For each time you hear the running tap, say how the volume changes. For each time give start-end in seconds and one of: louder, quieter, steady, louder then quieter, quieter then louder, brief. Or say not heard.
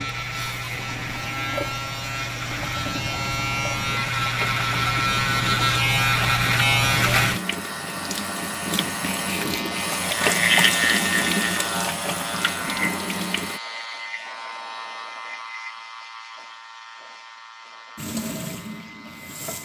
0.0-13.6 louder
17.9-19.5 brief.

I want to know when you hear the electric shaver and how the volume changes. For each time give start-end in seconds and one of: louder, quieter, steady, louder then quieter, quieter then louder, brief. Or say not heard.
0.0-19.5 louder then quieter.